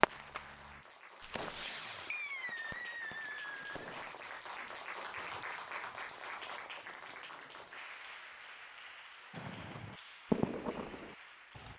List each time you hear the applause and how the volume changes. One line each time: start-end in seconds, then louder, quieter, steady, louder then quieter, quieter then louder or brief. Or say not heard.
0.0-11.7 louder then quieter.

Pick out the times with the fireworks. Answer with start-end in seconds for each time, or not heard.
0.0-4.2, 9.3-11.7.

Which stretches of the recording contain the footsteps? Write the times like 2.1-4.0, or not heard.
not heard.